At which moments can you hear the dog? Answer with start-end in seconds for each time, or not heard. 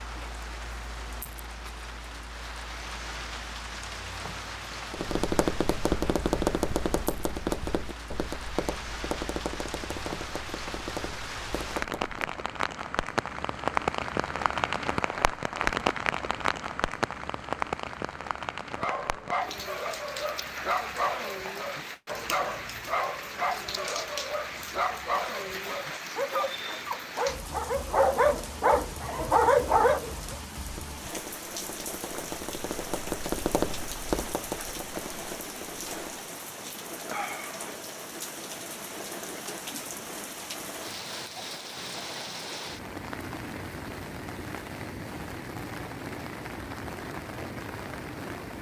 18.8-30.4.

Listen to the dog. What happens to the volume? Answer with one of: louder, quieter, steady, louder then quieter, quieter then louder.
louder.